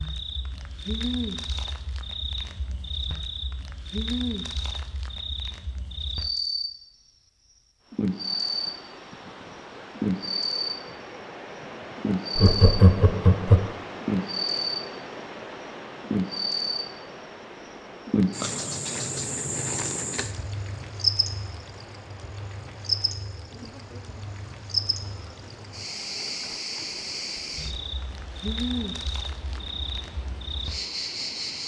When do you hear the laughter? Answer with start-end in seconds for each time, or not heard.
12.3-13.7.